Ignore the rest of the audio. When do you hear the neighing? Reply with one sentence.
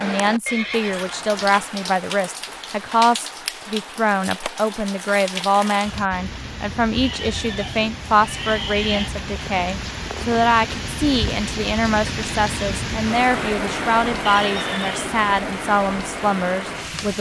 The neighing can be heard from 0.5 to 1.7 s, from 7.0 to 9.1 s and from 14.2 to 15.2 s.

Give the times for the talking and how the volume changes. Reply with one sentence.
The talking can be heard from 0.0 to 17.1 s, at a steady volume.